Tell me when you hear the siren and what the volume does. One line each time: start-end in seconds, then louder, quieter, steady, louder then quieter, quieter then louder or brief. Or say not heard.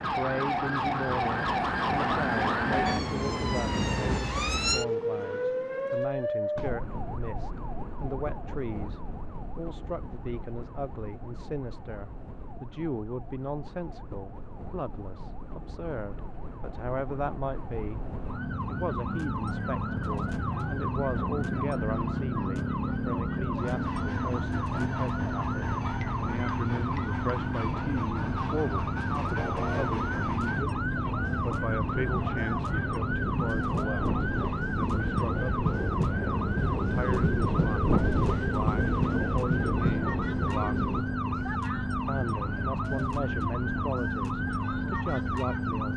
0.0-45.9 quieter then louder.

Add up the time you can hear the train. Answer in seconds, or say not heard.
22 s.